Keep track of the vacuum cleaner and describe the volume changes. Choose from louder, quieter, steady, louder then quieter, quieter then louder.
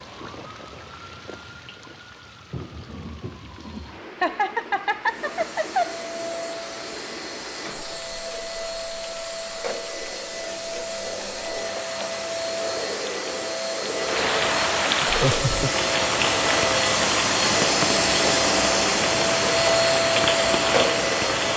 louder.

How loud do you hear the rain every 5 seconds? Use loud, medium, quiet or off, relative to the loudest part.
quiet, quiet, medium, loud, loud.